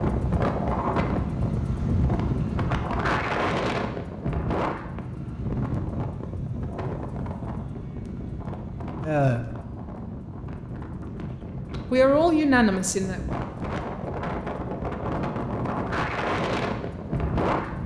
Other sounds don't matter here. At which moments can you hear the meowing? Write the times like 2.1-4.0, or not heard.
not heard.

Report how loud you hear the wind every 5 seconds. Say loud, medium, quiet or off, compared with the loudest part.
loud, medium, medium, loud.